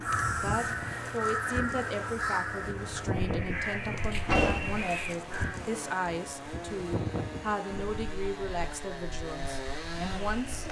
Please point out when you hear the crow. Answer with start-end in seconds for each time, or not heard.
0.0-5.5.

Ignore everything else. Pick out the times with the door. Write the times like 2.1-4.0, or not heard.
4.2-4.8.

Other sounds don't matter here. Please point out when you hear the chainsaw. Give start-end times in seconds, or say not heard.
0.0-10.6.